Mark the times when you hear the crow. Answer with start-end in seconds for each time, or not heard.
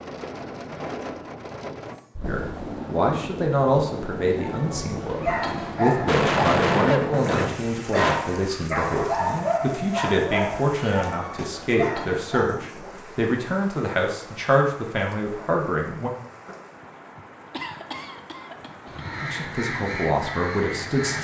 18.9-21.1.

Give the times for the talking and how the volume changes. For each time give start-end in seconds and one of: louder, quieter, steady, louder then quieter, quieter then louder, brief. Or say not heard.
2.2-16.1 steady
19.2-21.1 brief.